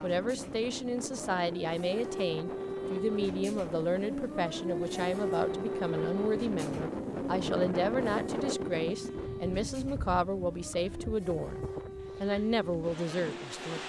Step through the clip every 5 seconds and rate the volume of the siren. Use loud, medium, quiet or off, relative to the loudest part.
loud, loud, medium.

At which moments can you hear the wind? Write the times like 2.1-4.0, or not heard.
0.0-13.8.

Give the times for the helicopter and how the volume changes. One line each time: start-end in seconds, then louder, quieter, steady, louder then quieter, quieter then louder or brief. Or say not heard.
not heard.